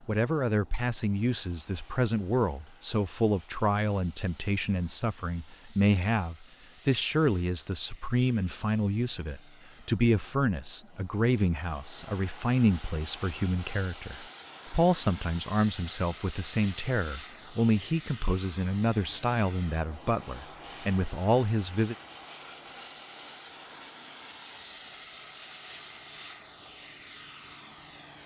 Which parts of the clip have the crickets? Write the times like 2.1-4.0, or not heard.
7.4-28.2.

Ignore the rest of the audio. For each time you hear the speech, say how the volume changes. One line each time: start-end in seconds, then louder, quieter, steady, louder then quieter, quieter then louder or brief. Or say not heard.
0.1-21.9 steady.